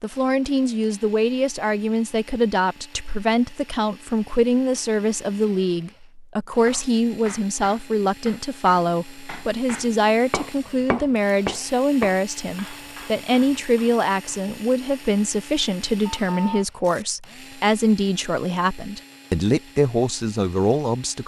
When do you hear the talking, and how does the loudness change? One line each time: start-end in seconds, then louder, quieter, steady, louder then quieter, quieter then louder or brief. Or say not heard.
0.0-21.2 steady.